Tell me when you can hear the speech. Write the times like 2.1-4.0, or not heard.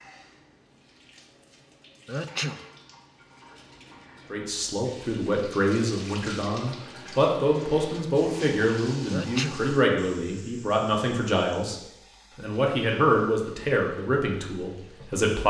4.3-11.8, 12.3-15.4.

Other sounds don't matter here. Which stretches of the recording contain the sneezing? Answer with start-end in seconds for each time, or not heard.
2.0-2.6, 9.1-9.7.